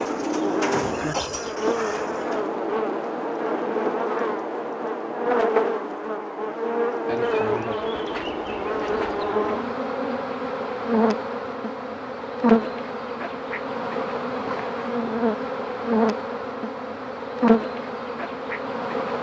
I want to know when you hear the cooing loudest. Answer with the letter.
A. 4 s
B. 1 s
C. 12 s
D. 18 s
B.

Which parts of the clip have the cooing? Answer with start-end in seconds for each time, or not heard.
0.0-2.5.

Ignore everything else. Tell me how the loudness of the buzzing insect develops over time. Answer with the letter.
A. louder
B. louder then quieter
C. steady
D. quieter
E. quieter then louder
C.